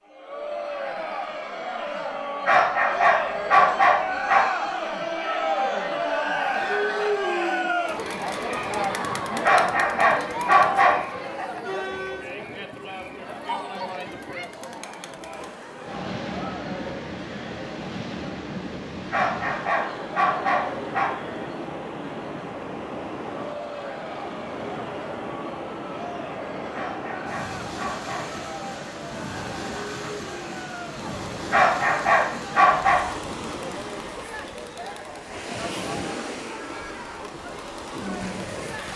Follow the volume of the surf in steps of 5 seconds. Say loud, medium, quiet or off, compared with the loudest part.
off, off, off, loud, loud, loud, loud, loud.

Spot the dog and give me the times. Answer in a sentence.
You can hear the dog from 2.5 to 4.5 s, from 9.4 to 11.0 s, from 19.1 to 21.1 s, from 26.7 to 28.4 s and from 31.5 to 33.0 s.